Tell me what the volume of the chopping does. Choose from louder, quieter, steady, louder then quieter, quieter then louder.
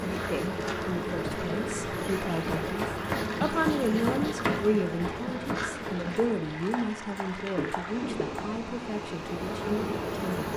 quieter.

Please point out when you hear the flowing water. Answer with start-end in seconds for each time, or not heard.
0.0-10.5.